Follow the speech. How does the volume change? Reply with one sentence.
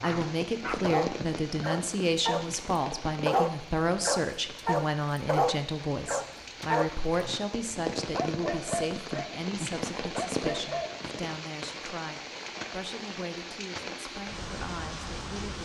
The loudness of the speech goes down.